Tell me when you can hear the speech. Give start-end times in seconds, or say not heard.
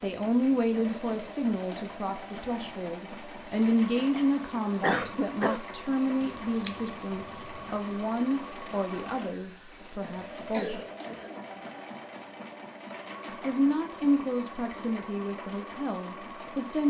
0.0-10.8, 13.4-16.8.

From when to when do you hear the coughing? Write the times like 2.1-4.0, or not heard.
3.5-5.6, 10.5-11.6.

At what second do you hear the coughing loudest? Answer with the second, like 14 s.
5 s.